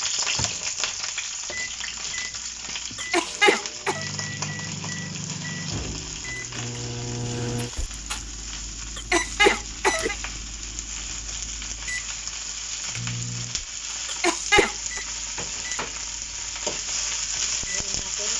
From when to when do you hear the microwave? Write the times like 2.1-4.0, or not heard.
0.0-18.3.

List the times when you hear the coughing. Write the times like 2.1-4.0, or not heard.
3.0-4.0, 8.9-10.2, 14.1-15.0.